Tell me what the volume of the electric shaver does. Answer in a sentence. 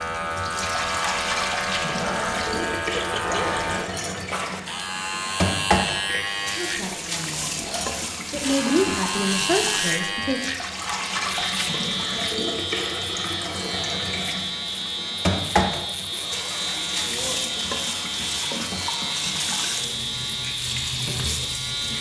The volume of the electric shaver stays about the same.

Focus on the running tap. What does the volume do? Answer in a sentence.
The volume of the running tap stays about the same.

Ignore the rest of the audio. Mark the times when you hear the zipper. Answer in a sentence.
The zipper can be heard from 3.1 to 4.6 s, from 7.5 to 8.2 s and from 16.1 to 17.4 s.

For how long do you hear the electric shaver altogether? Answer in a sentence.
You can hear the electric shaver for 22 seconds altogether.